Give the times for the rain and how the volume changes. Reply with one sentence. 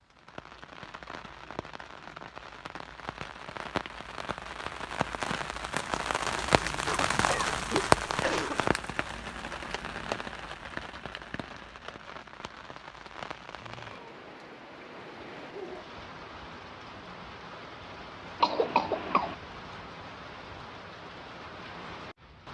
You can hear the rain from 0.0 to 22.4 s, getting louder then quieter.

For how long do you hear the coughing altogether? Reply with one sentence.
The coughing can be heard for 3 seconds in total.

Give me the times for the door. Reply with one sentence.
You can't hear the door here.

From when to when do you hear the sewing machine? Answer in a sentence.
You can't hear the sewing machine here.